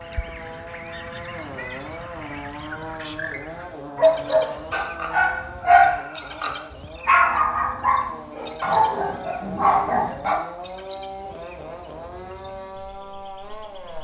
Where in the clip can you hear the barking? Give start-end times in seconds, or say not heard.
4.0-10.4.